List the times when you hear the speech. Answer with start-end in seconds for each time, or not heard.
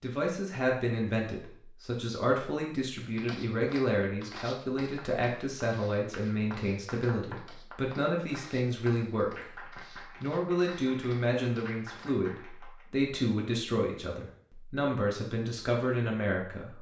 0.0-9.4, 10.2-16.7.